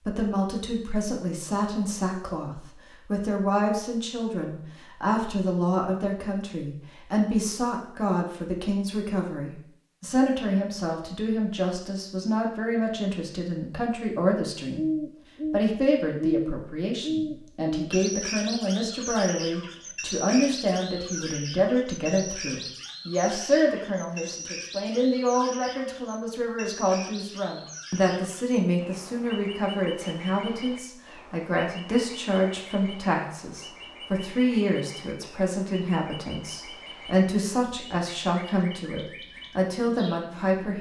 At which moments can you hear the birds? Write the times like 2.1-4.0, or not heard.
14.8-40.7.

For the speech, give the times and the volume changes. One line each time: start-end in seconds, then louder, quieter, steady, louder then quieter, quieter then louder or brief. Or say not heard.
0.0-14.9 steady
15.5-40.7 steady.